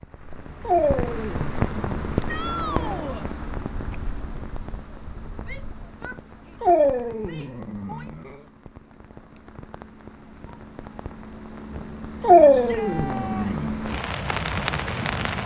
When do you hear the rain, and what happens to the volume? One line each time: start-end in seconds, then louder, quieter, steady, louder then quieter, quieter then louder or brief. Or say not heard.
0.0-15.4 quieter then louder.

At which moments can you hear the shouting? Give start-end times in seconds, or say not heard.
2.2-3.2, 5.5-8.1, 12.5-13.7.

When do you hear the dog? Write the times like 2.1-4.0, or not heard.
0.7-3.1, 6.6-8.3, 12.2-13.8.